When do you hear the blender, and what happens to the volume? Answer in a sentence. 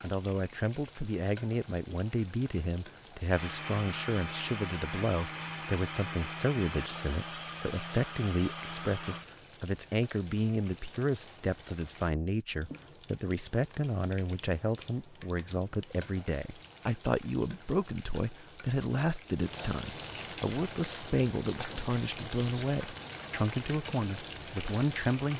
You can hear the blender from 3.3 to 9.2 s, at a steady volume.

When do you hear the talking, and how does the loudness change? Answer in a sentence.
The talking can be heard from 0.0 to 25.3 s, at a steady volume.